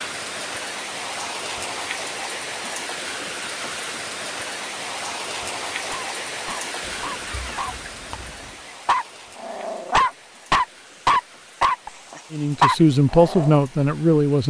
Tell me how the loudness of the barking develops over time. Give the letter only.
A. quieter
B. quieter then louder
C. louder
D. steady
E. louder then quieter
C.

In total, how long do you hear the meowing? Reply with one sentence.
You can hear the meowing for 2 seconds altogether.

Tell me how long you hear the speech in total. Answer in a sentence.
The speech can be heard for 2 seconds in total.